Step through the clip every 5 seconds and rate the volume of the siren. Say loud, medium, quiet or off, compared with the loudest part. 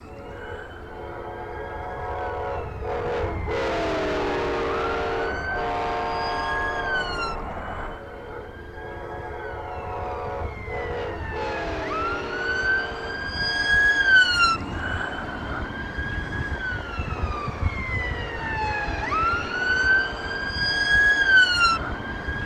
quiet, quiet, loud, medium, loud.